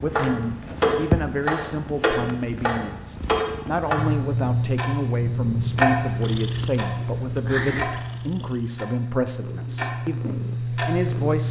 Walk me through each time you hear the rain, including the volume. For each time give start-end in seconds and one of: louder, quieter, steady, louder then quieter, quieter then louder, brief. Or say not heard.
not heard.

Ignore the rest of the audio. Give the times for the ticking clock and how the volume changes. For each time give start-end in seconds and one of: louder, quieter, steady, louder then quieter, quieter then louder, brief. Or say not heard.
0.0-11.4 quieter.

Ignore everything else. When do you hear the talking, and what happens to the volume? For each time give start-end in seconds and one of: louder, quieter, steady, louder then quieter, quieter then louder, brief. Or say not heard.
0.0-11.4 steady.